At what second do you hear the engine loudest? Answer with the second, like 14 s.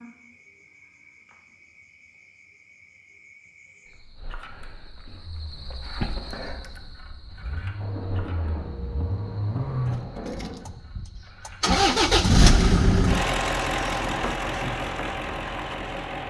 12 s.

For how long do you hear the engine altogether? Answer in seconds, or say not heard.
11 s.